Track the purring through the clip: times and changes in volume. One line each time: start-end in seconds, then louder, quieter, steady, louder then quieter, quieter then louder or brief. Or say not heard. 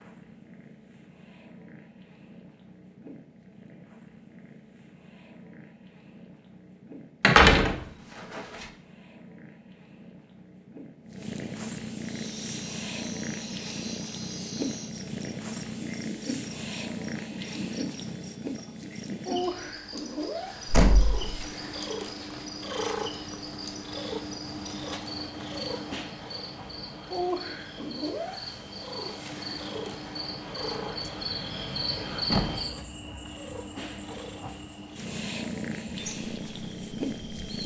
0.0-37.6 louder.